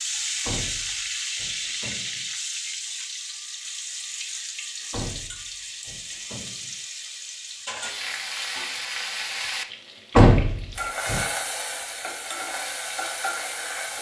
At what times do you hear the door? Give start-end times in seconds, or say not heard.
0.5-2.2, 4.9-6.7, 10.2-11.2.